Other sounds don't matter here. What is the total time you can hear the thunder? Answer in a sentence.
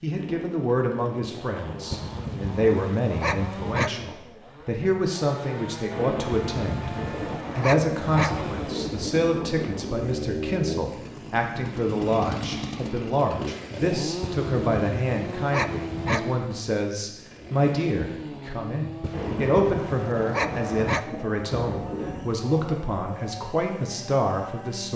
You can hear the thunder for 7 seconds altogether.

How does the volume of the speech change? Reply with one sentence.
The volume of the speech stays about the same.